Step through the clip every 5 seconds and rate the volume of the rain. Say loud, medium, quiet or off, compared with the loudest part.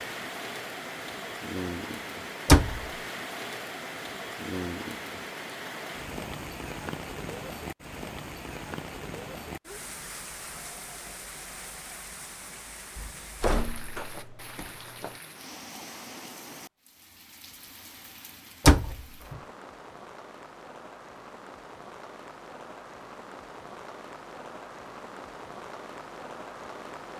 loud, loud, medium, medium, medium, medium.